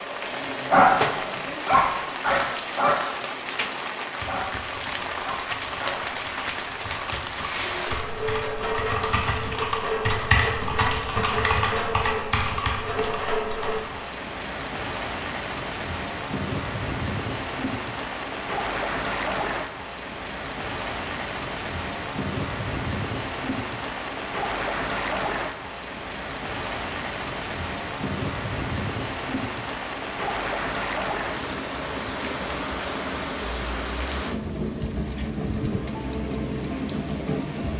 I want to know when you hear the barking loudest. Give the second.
1 s.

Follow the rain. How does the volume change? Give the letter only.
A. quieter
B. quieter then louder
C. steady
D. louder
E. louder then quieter
C.